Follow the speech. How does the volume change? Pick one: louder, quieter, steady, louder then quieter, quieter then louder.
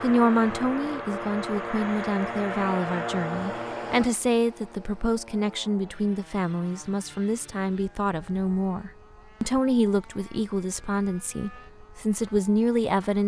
steady.